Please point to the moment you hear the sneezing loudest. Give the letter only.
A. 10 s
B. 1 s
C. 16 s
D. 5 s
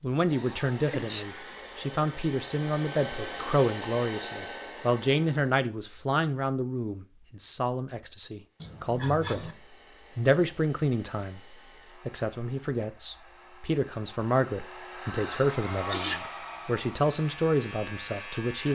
C.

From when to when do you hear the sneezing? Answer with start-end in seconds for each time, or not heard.
0.3-1.2, 8.6-9.6, 15.8-16.2.